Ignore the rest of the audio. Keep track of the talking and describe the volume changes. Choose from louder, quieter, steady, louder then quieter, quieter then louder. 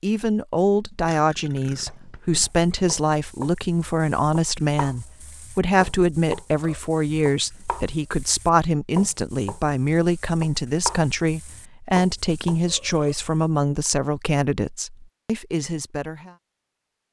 steady.